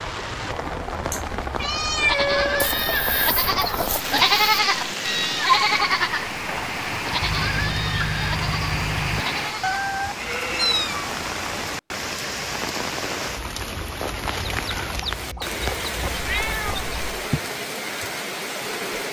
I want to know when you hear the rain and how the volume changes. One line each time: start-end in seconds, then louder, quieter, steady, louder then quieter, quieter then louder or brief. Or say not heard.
0.0-19.0 steady.